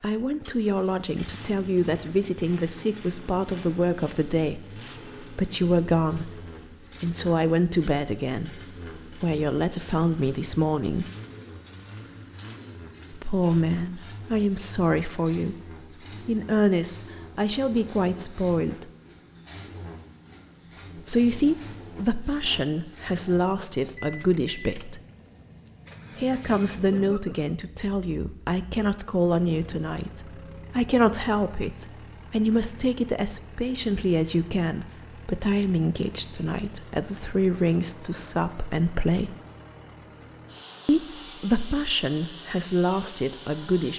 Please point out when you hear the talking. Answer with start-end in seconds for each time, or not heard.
0.0-11.1, 13.1-15.6, 16.2-18.9, 20.9-25.0, 26.1-39.4, 40.9-43.9.